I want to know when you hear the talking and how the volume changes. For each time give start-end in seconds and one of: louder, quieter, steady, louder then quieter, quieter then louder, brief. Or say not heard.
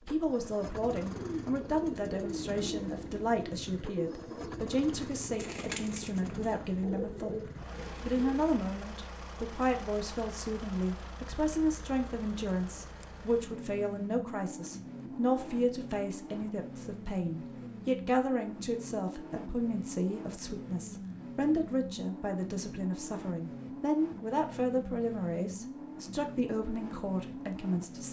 0.1-28.0 steady.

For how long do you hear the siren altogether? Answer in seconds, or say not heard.
not heard.